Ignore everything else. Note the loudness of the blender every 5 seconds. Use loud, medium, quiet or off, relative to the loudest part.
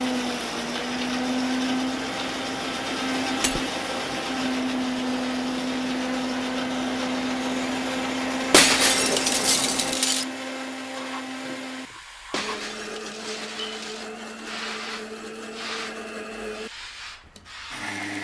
loud, loud, medium, medium.